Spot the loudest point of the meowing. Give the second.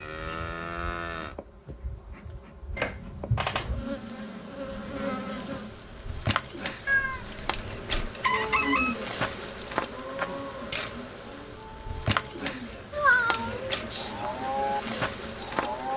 13 s.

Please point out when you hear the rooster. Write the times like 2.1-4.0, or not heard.
8.2-8.9.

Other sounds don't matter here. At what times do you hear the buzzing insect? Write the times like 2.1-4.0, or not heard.
0.1-15.9.